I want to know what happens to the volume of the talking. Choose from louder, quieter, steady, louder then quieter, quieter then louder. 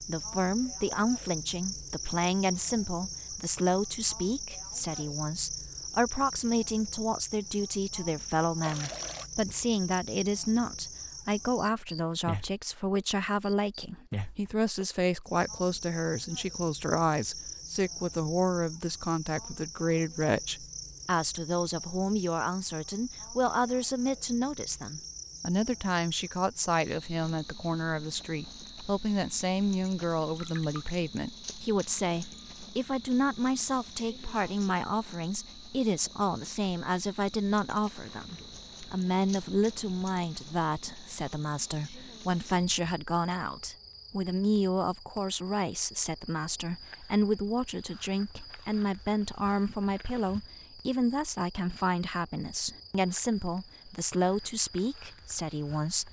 steady.